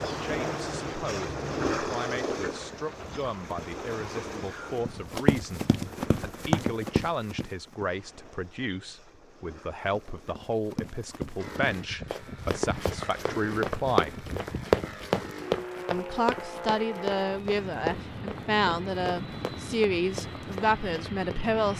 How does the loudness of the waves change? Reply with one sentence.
The volume of the waves goes down.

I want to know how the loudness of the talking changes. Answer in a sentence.
The volume of the talking goes up.